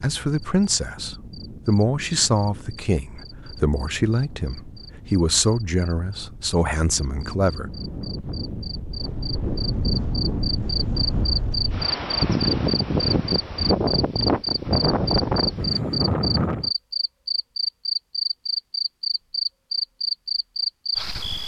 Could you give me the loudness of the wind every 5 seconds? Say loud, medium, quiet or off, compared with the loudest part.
quiet, medium, loud, loud, off.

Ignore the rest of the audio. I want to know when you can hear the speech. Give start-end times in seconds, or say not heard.
0.0-7.7.